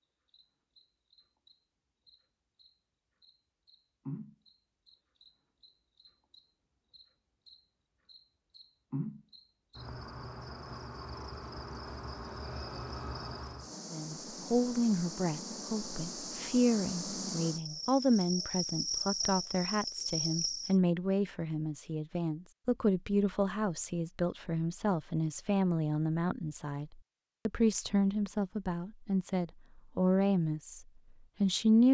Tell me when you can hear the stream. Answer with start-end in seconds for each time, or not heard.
not heard.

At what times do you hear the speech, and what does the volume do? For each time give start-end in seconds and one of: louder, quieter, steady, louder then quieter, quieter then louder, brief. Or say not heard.
13.9-30.8 steady
31.4-31.8 brief.